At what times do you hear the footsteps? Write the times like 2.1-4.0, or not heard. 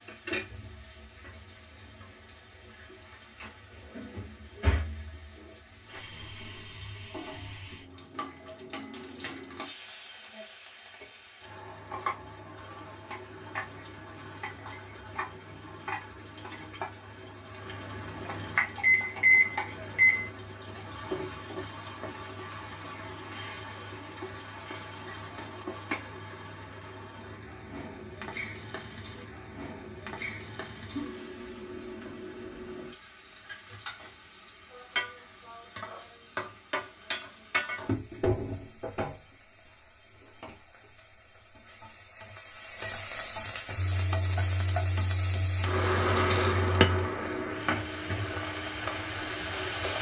not heard.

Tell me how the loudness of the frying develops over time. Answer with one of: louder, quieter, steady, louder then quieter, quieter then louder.
louder.